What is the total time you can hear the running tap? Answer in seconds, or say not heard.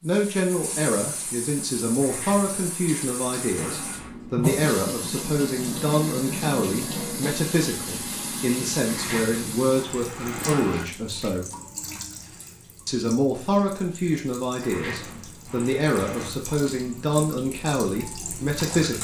19 s.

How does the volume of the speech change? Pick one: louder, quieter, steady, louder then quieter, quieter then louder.
steady.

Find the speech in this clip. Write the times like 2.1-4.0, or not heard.
0.0-11.4, 12.8-18.9.